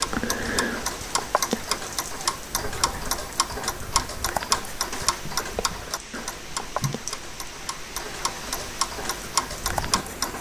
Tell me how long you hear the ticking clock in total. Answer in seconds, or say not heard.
10 s.